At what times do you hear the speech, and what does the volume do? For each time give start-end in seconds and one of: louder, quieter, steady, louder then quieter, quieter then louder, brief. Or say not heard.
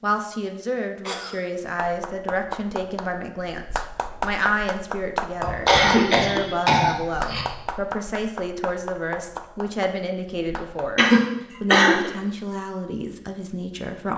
0.0-14.1 steady.